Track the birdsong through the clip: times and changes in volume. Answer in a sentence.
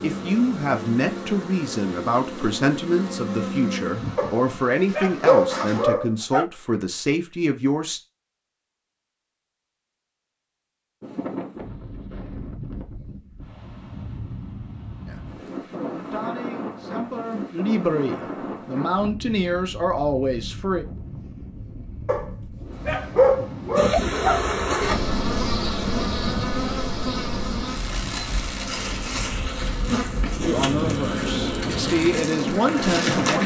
The birdsong can't be heard in this clip.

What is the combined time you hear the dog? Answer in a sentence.
The dog can be heard for 5 seconds in total.